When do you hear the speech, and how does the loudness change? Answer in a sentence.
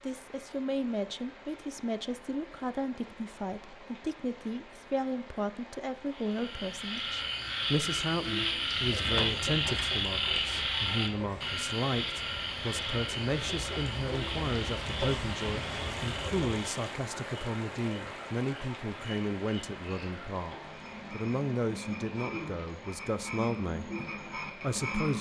You can hear the speech from 0.0 to 25.1 s, at a steady volume.